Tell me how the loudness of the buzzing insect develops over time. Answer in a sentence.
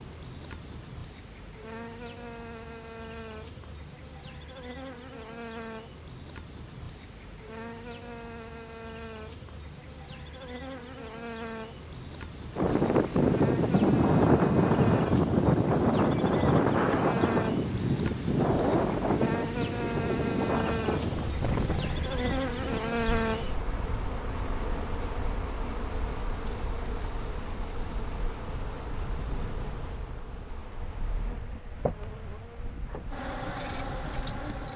The volume of the buzzing insect goes up, then down.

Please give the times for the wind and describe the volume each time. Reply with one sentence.
You can hear the wind from 12.6 to 34.7 s, getting quieter.